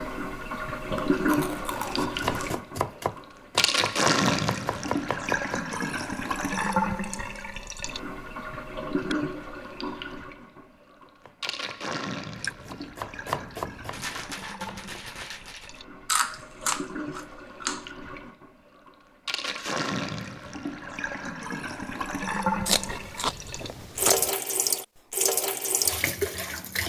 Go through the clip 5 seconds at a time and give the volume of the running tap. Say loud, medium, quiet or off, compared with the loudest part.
loud, loud, medium, medium, loud, loud.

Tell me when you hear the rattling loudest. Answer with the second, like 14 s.
14 s.